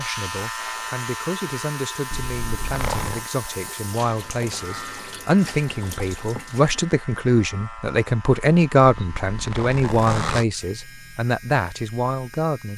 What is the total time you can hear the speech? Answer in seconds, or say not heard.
13 s.